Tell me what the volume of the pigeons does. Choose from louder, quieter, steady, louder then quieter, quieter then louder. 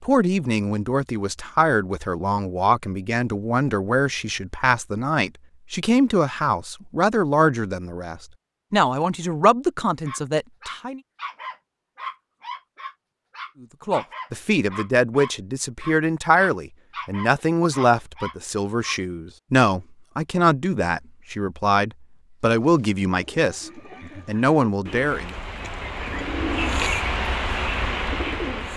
louder.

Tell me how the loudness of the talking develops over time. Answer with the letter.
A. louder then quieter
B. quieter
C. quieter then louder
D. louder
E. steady
E.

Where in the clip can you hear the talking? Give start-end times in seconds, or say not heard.
0.0-11.0, 13.6-25.3.